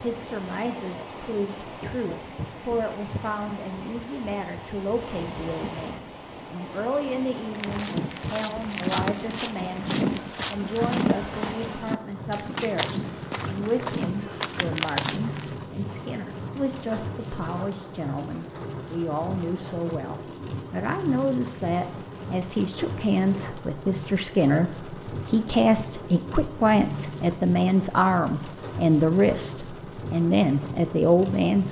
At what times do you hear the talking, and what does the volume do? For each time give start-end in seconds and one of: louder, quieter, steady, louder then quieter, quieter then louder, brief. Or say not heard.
0.0-31.6 louder.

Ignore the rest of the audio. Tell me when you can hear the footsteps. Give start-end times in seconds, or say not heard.
7.5-15.6.